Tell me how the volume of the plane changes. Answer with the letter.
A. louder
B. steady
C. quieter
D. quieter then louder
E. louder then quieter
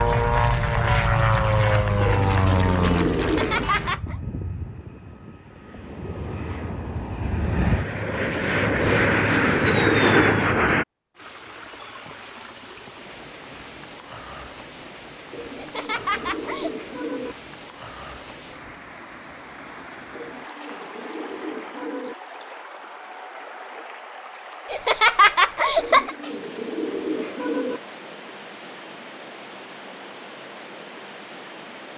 D.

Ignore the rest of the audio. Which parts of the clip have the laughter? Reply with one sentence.
You can hear the laughter from 3.2 to 4.2 s, from 15.6 to 16.7 s and from 24.7 to 26.1 s.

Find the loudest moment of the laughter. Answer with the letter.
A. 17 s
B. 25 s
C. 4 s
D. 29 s
B.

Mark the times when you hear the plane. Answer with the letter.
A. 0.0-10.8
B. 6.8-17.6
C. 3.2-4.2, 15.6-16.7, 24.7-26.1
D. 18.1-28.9
A.